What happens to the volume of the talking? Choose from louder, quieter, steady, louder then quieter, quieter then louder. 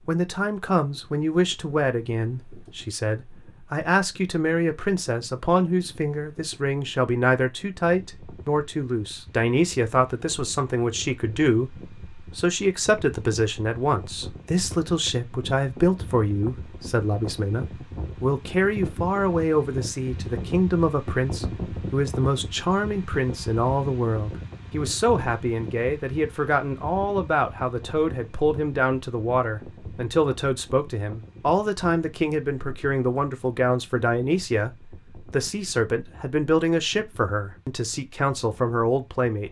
steady.